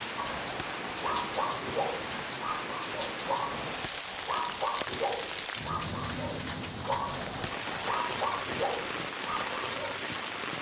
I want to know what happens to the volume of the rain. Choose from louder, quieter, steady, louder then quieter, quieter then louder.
steady.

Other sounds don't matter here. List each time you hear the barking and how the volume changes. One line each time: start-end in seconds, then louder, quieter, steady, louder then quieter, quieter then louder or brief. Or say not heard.
0.1-10.0 steady.